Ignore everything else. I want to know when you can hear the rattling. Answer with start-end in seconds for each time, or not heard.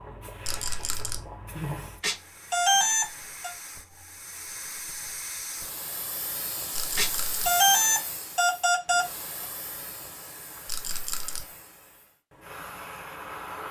0.4-1.2, 6.7-7.5, 10.7-11.4.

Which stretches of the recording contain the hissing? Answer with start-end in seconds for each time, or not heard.
0.0-13.6.